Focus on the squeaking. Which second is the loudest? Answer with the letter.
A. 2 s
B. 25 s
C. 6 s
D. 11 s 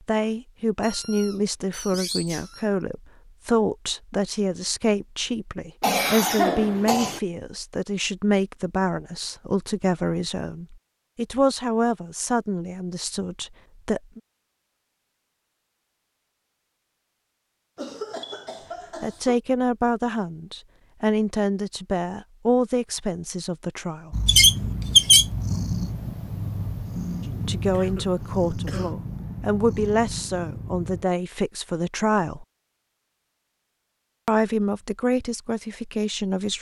B.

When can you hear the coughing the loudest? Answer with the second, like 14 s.
6 s.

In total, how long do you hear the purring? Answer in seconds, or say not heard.
7 s.